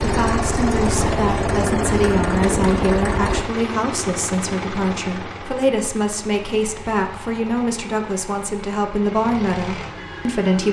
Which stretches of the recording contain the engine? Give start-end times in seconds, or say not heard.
0.0-10.6.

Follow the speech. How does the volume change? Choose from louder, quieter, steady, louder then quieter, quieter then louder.
steady.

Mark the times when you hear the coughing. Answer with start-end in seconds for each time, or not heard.
not heard.